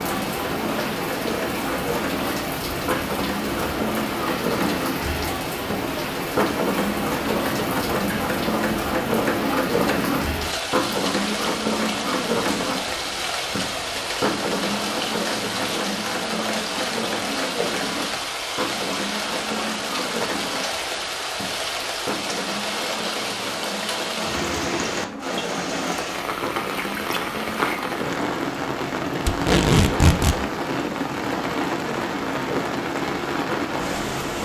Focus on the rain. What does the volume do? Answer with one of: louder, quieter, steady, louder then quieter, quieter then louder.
steady.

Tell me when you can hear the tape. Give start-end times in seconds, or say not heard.
29.2-30.4.